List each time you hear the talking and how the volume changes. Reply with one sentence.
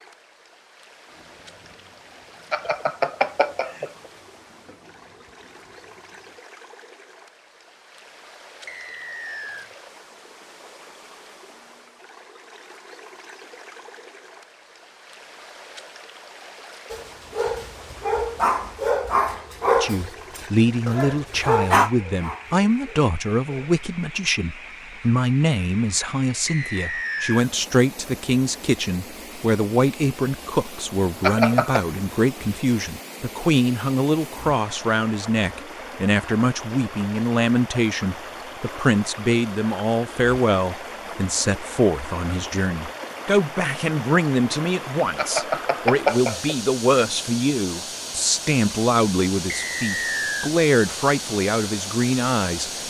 The talking can be heard from 19.8 to 52.7 s, at a steady volume.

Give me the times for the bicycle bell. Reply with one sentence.
The bicycle bell can be heard from 2.5 to 3.9 s, from 31.2 to 31.9 s and from 45.1 to 46.5 s.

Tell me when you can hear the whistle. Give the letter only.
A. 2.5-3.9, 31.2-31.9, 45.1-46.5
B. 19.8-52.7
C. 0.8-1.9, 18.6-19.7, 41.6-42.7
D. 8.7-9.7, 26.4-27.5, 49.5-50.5
D.